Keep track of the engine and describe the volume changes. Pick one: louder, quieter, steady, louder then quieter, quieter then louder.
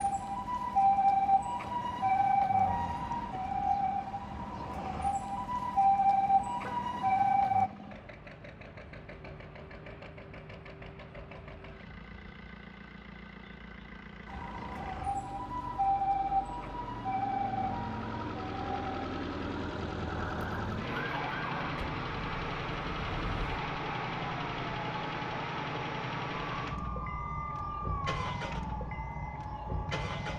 louder.